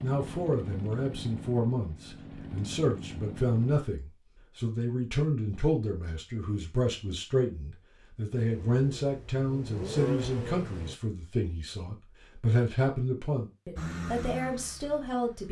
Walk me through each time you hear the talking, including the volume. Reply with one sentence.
The talking can be heard from 0.0 to 15.4 s, at a steady volume.